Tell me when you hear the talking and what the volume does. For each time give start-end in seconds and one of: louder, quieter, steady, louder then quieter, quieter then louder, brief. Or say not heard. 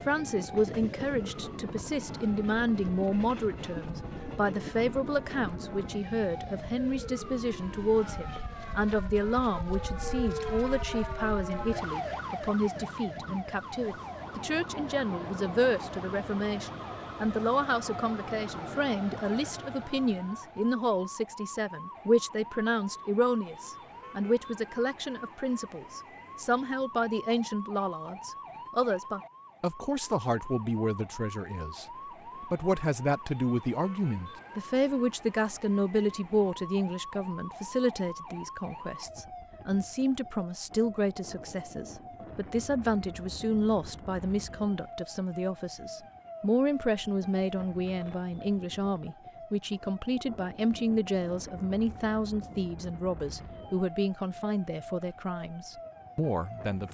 0.1-56.8 steady.